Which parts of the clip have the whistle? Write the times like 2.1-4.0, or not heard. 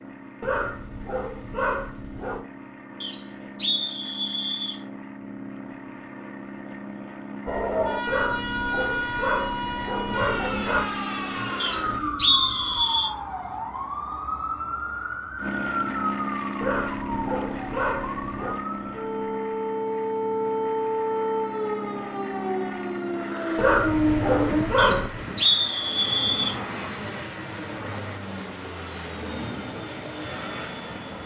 3.0-4.8, 11.6-13.1, 24.8-26.6.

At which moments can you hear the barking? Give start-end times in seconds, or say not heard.
0.4-2.5, 8.1-10.9, 16.6-18.6, 23.6-25.2.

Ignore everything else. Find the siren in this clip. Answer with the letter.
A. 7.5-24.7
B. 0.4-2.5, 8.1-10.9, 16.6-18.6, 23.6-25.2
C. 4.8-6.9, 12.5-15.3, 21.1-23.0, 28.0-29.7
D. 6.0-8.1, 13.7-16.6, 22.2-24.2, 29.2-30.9
A.